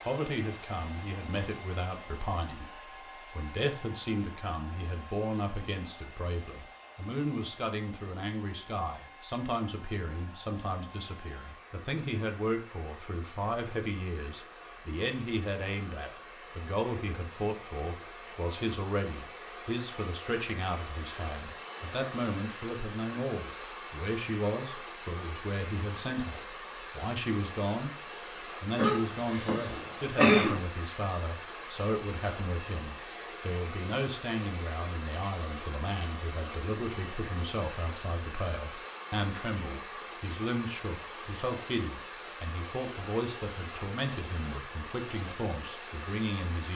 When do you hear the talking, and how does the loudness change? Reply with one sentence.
You can hear the talking from 0.1 to 27.9 s, at a steady volume; and from 28.6 to 46.7 s, at a steady volume.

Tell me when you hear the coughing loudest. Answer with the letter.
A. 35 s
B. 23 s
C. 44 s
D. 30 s
D.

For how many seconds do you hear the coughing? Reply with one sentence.
You can hear the coughing for 2 seconds altogether.